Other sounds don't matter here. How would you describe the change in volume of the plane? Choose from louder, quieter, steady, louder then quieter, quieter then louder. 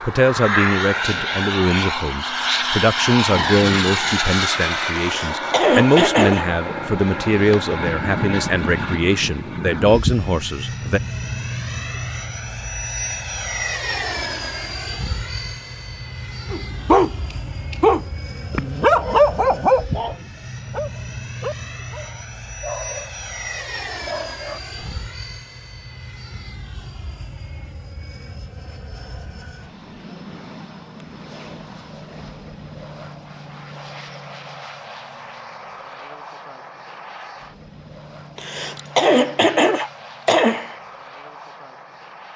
quieter.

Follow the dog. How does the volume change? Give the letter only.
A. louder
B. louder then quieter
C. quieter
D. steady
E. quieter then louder
C.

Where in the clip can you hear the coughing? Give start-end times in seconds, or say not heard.
5.0-6.5, 38.4-40.8.